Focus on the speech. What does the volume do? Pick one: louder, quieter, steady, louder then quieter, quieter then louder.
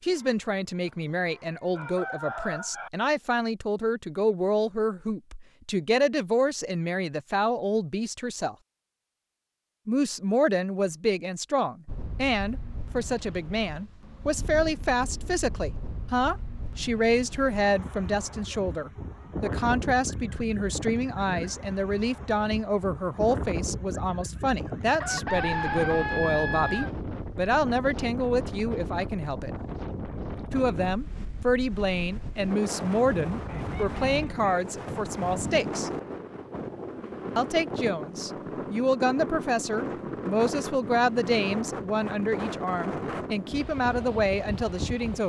steady.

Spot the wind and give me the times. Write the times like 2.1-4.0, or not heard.
11.8-45.2.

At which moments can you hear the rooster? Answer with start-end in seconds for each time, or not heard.
0.1-2.9, 25.0-26.9, 33.5-34.5.